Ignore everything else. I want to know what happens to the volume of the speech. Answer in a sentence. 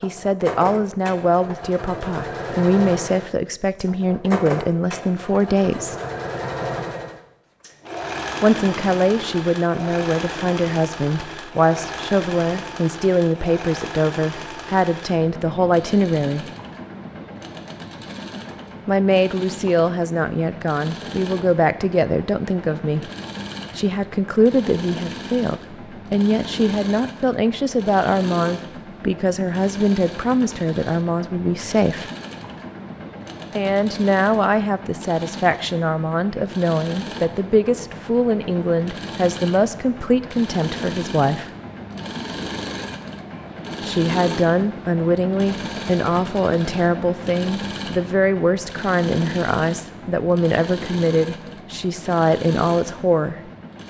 The loudness of the speech stays about the same.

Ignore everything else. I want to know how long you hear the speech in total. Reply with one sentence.
The speech can be heard for 44 seconds in total.